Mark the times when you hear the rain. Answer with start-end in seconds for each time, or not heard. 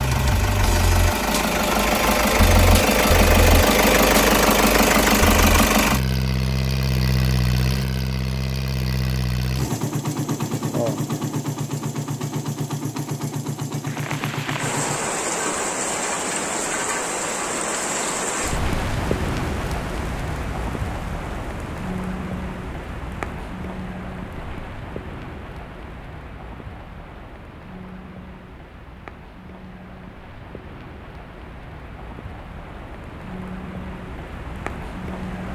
13.8-35.5.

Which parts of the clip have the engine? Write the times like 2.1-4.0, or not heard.
0.0-15.1.